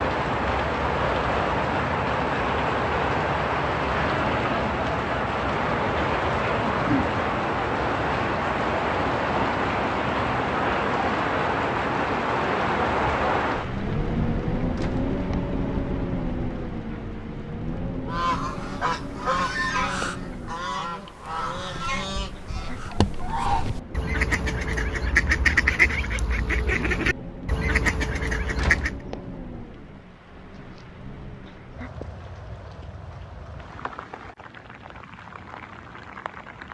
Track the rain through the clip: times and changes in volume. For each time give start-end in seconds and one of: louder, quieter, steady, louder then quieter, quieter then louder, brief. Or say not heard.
0.0-36.6 quieter.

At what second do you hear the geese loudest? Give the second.
26 s.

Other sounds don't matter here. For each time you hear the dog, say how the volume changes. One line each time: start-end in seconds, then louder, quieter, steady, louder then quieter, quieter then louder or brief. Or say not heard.
not heard.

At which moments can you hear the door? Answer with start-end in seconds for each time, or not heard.
14.7-15.1, 28.6-29.2.